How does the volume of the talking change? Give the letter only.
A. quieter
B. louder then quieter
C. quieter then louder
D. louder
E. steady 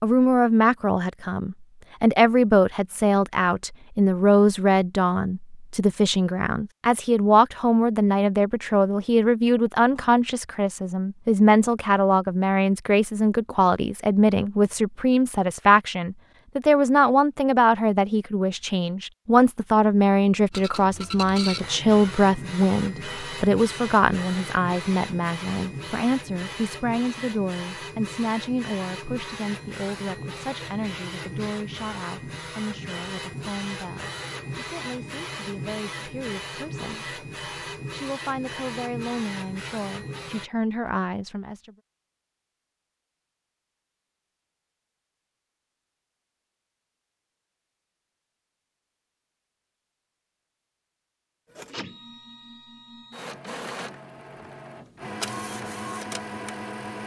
A.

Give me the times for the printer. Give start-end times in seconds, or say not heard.
20.5-40.5, 51.5-57.0.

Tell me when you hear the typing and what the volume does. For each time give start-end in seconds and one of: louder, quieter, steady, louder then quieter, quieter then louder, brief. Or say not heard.
not heard.